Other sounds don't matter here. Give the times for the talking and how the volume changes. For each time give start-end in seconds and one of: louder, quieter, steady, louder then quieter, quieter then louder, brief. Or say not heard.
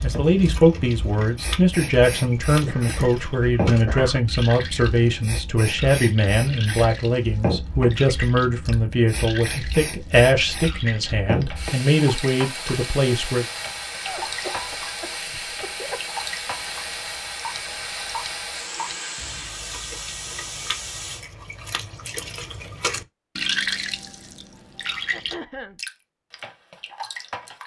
0.0-13.4 steady.